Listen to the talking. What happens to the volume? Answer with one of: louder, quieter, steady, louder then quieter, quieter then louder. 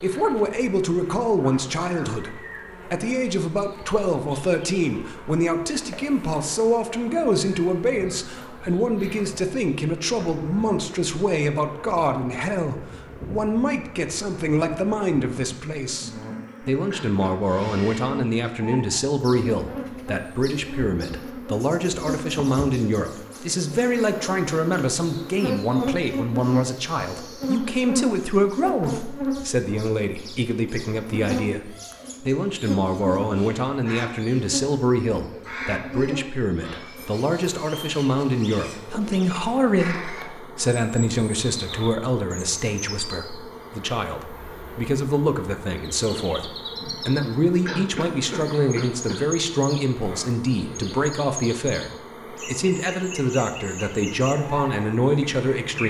steady.